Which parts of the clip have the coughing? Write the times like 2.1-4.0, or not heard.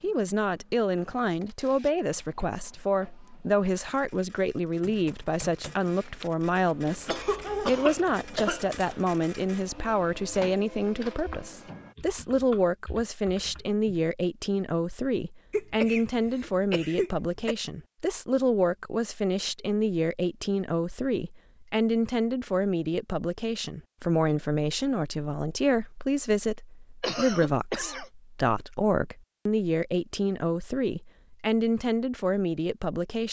7.0-9.0, 15.5-17.6, 27.0-28.1.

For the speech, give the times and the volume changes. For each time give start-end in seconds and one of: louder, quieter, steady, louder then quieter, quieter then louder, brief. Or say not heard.
0.0-33.2 steady.